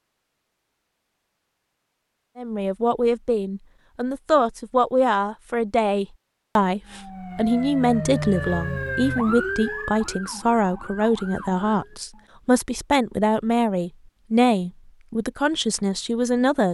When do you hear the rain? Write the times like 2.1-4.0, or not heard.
not heard.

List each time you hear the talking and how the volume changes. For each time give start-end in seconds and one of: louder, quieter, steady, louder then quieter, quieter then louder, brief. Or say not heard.
2.4-16.6 steady.